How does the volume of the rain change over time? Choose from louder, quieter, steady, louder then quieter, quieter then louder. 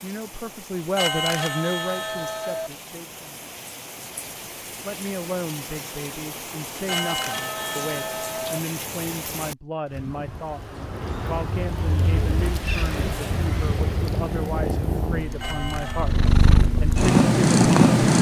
louder.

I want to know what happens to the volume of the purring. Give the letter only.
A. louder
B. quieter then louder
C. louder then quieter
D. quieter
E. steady
A.